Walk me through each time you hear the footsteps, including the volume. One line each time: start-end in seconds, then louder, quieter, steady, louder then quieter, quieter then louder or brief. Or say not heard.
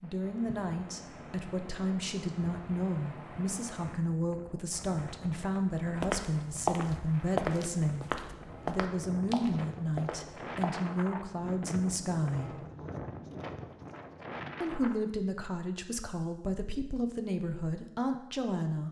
5.8-10.8 quieter.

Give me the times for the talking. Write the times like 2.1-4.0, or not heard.
0.0-8.1, 8.7-12.5, 14.6-18.8.